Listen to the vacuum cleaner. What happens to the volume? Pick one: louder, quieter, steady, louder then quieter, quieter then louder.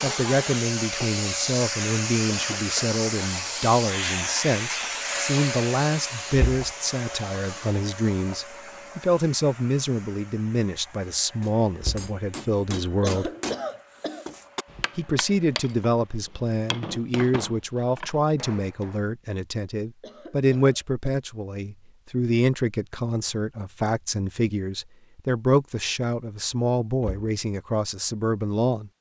quieter.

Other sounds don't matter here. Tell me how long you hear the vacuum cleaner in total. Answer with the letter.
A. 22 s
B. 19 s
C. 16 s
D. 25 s
C.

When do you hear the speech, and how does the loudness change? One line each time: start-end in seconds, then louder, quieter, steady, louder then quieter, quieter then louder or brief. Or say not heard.
0.0-13.3 steady
14.9-28.9 steady.